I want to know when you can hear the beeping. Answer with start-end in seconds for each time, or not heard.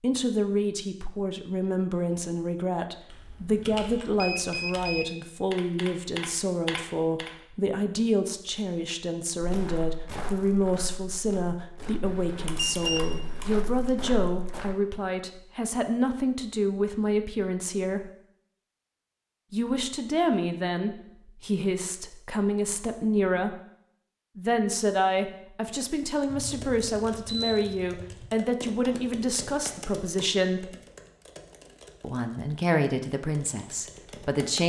3.5-5.0, 12.0-13.5, 26.3-28.3.